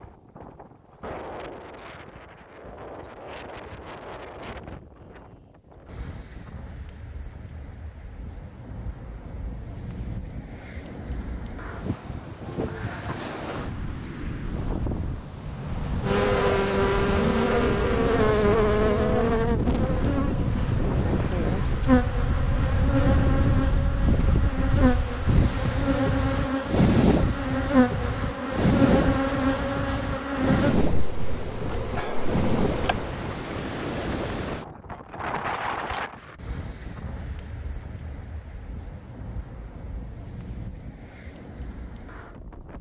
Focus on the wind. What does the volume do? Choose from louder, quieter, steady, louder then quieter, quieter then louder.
louder then quieter.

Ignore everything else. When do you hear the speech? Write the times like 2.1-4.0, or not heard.
not heard.